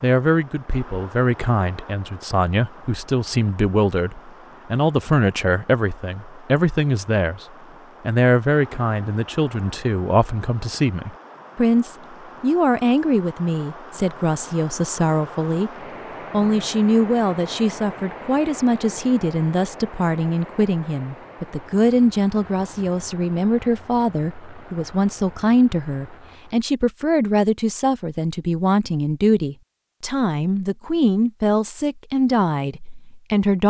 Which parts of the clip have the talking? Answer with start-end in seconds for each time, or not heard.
0.0-7.5, 8.1-15.7, 16.3-33.6.